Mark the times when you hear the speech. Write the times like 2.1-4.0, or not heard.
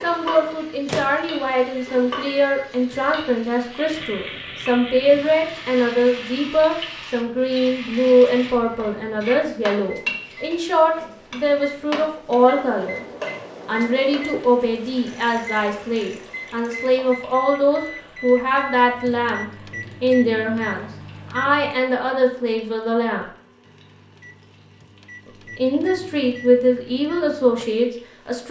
0.0-13.1, 13.7-23.2, 25.6-28.4.